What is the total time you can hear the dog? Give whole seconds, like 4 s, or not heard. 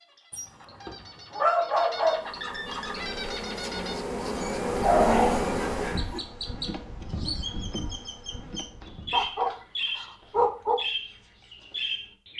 5 s.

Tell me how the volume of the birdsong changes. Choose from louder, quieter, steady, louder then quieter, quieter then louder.
louder.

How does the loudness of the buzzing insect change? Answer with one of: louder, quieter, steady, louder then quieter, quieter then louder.
louder then quieter.